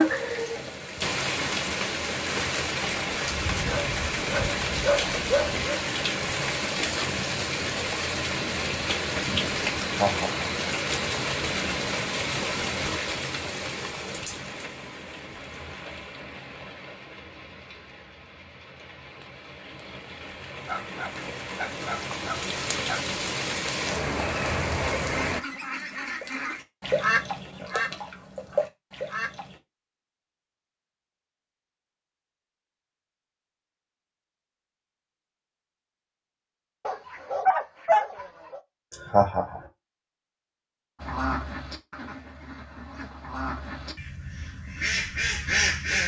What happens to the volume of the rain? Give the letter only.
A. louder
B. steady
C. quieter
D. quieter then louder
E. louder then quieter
D.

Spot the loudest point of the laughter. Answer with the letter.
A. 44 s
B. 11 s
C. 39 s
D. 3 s
C.